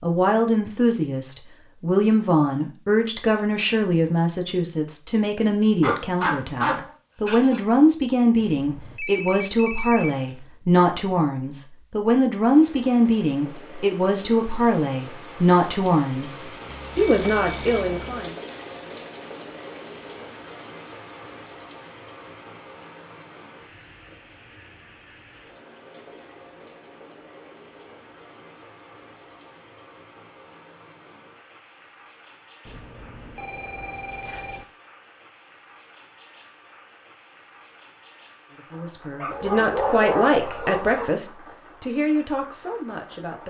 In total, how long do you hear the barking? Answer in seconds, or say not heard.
4 s.